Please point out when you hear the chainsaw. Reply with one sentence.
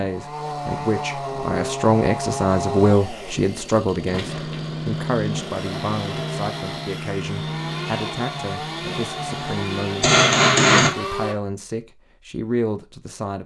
You can hear the chainsaw from 0.0 to 11.3 s.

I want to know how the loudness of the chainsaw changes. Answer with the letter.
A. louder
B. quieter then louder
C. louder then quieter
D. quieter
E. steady
E.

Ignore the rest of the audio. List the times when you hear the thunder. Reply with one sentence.
The thunder can't be heard in this clip.